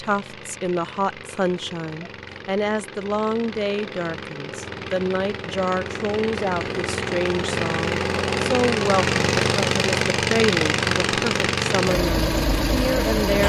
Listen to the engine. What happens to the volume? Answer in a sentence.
The volume of the engine goes up.